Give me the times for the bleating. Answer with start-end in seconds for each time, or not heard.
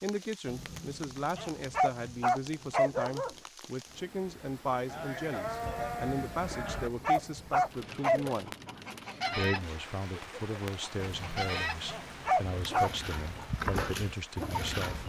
4.8-6.9.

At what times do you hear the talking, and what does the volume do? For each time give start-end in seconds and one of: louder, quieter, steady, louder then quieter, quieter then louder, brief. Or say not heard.
0.0-8.6 steady
9.3-15.0 steady.